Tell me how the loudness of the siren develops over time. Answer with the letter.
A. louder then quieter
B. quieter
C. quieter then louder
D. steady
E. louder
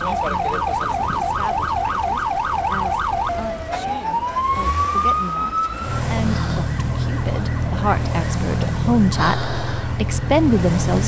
D.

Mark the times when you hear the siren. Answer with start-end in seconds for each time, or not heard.
0.0-11.0.